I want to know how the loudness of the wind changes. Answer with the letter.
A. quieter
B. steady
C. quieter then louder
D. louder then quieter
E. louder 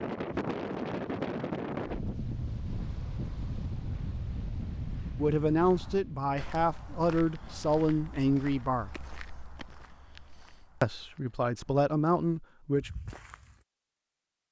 A.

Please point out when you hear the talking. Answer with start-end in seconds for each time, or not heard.
5.2-8.9, 10.8-12.9.